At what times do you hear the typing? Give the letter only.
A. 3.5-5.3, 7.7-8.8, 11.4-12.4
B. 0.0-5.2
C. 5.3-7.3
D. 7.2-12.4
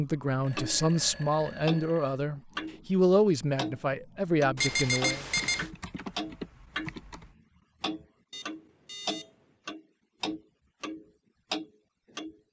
C.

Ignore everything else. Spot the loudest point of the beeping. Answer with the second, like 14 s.
5 s.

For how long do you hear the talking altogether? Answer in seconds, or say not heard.
5 s.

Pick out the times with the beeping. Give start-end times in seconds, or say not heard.
0.4-2.2, 4.5-5.7, 8.3-9.3.